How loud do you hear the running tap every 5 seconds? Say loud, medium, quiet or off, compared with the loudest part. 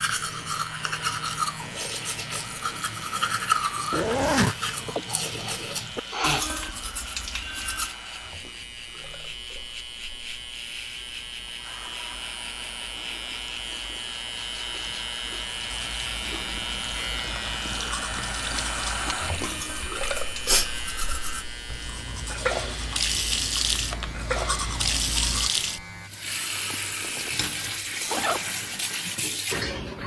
quiet, quiet, quiet, medium, loud, loud.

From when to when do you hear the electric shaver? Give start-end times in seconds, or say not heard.
0.1-26.1.